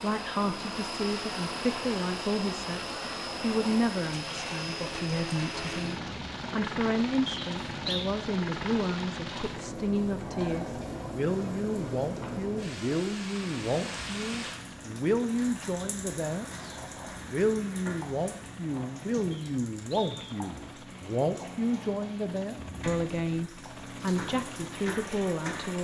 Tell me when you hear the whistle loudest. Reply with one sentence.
The volume of the whistle peaks at 8 seconds.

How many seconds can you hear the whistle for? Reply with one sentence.
The whistle can be heard for 2 seconds in total.